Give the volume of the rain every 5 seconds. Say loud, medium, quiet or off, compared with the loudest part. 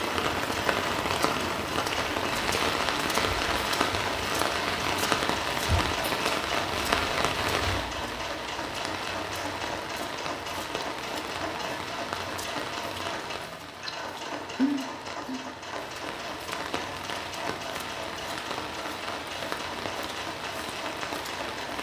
loud, loud, medium, medium, medium.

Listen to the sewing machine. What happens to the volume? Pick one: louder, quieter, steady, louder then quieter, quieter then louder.
steady.